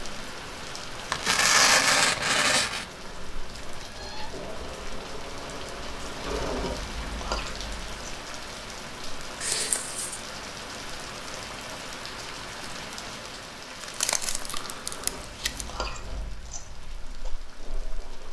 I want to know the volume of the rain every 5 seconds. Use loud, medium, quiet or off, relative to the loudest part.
loud, loud, loud, medium.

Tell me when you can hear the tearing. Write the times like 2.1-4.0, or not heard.
1.1-2.9, 9.4-10.2, 13.8-15.7.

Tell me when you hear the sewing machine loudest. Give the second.
7 s.